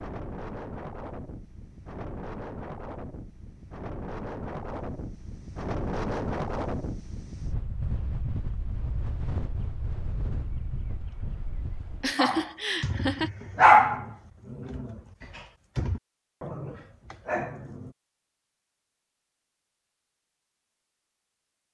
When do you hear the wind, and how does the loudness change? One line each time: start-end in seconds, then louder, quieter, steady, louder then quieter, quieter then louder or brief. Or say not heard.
0.0-12.2 louder then quieter.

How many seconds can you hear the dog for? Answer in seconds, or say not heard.
6 s.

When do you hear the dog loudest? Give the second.
14 s.